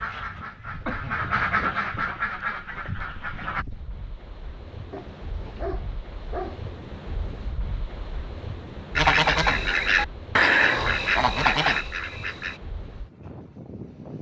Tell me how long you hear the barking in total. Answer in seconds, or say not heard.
2 s.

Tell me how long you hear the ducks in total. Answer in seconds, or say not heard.
7 s.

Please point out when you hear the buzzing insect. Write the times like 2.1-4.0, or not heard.
not heard.